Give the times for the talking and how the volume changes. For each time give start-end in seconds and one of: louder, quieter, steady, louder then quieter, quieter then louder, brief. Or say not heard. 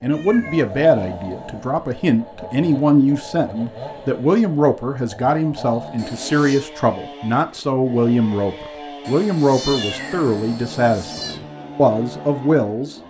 0.0-12.9 steady.